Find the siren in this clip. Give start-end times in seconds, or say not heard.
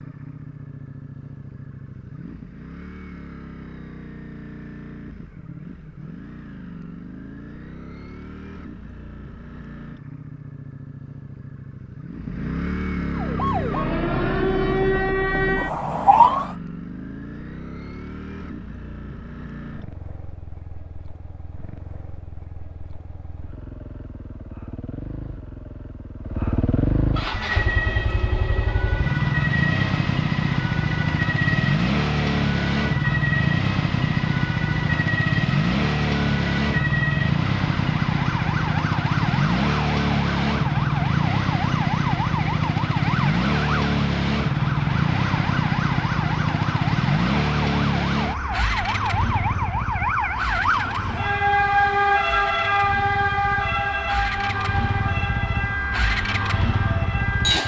13.2-16.6, 27.2-57.6.